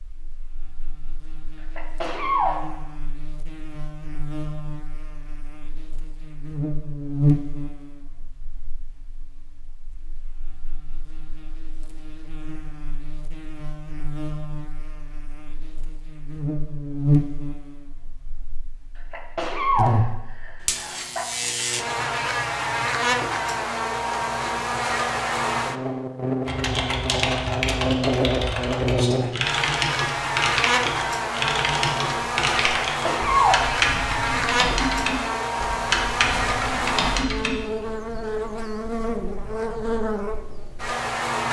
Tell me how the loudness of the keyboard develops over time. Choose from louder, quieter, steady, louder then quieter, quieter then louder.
steady.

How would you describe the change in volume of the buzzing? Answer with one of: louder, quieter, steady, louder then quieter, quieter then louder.
quieter then louder.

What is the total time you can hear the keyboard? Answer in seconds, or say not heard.
11 s.